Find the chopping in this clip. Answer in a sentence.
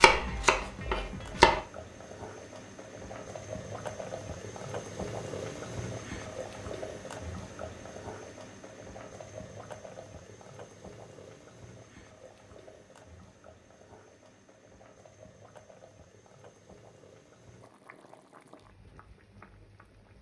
The chopping can be heard from 0.0 to 1.6 s.